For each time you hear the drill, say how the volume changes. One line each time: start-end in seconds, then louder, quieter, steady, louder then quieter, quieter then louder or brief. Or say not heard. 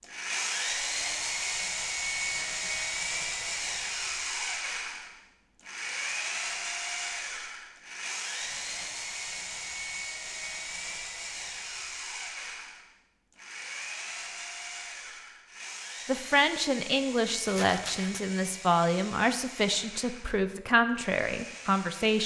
0.0-22.2 quieter.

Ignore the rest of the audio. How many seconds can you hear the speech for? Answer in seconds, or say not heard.
6 s.